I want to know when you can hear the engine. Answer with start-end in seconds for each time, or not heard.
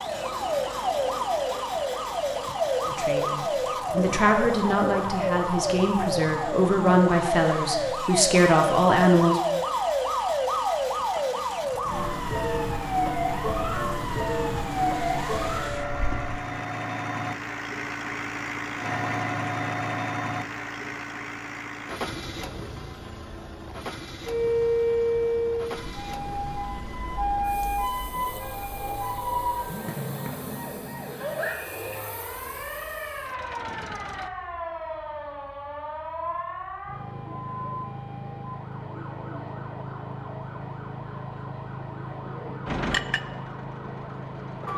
0.0-34.3, 42.6-44.7.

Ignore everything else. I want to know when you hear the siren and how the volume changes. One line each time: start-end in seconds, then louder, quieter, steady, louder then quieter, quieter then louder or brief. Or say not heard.
0.0-16.4 steady
24.2-44.7 quieter.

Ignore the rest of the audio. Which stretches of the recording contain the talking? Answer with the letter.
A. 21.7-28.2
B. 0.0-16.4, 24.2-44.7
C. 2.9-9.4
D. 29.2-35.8
C.